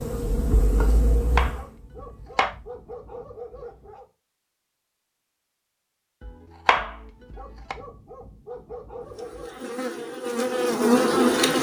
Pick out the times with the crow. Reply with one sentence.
You can't hear the crow here.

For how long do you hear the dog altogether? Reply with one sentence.
You can hear the dog for 5 seconds altogether.